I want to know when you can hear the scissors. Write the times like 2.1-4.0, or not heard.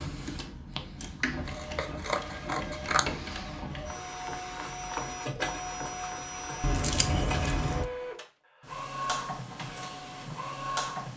1.4-3.0, 6.6-7.8.